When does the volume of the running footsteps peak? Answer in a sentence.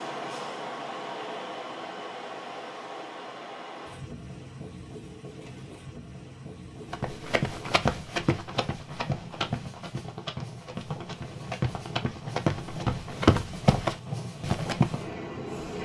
The volume of the running footsteps peaks at 13 seconds.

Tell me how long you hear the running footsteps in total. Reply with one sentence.
The running footsteps can be heard for 8 seconds in total.